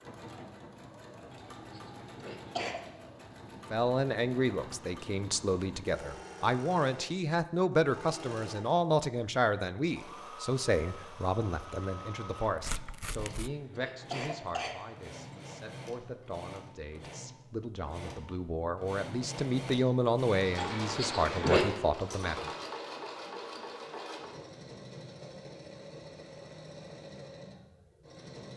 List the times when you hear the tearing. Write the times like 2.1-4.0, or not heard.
12.4-13.5.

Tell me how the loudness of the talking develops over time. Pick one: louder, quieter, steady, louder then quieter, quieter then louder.
quieter then louder.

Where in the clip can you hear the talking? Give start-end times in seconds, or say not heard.
3.7-22.4.